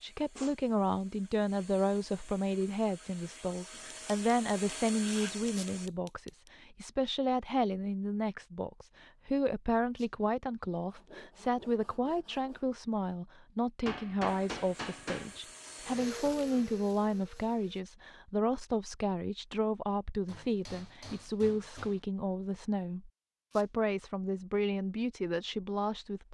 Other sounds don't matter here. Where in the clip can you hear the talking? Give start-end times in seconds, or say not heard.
0.0-26.2.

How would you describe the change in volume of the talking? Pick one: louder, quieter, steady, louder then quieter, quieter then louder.
steady.